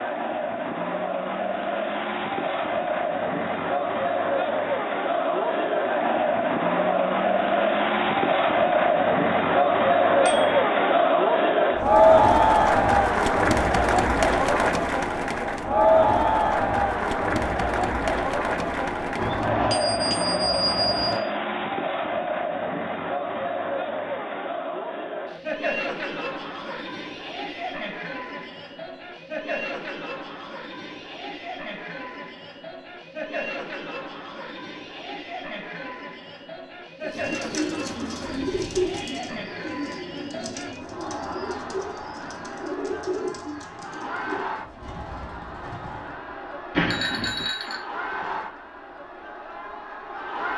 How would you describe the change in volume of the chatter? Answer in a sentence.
The volume of the chatter goes down.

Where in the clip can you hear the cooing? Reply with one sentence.
The cooing can be heard from 37.0 to 46.4 s.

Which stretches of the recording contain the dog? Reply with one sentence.
You can't hear the dog here.